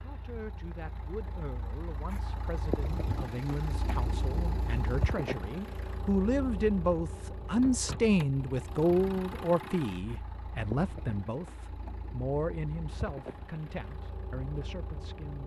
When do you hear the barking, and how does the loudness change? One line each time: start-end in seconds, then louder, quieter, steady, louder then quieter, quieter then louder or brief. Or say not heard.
not heard.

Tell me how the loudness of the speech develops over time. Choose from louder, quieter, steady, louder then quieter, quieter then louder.
louder then quieter.